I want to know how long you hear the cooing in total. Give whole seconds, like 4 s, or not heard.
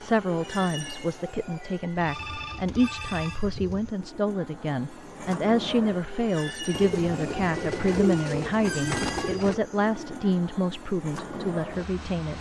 5 s.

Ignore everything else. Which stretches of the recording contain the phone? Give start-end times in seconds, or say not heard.
2.0-3.4.